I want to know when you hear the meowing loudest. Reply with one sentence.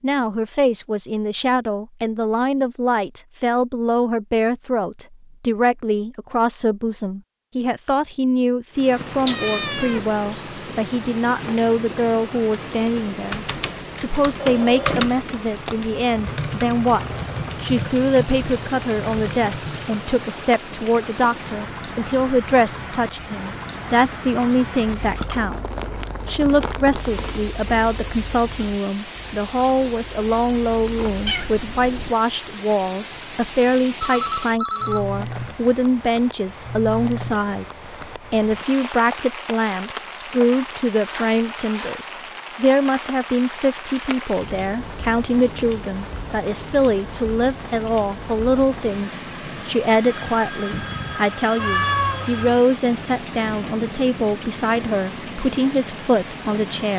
The loudest moment of the meowing is at 52 seconds.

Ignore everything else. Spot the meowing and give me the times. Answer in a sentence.
The meowing can be heard from 9.2 to 10.1 s, from 31.2 to 32.1 s and from 51.5 to 52.4 s.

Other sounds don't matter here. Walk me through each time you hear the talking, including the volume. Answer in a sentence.
The talking can be heard from 0.0 to 56.9 s, at a steady volume.